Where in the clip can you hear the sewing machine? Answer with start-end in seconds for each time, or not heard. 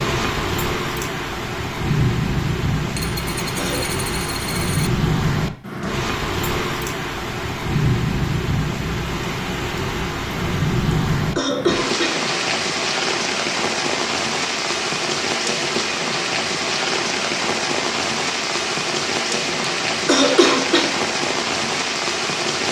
not heard.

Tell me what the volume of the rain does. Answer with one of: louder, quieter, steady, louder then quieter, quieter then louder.
steady.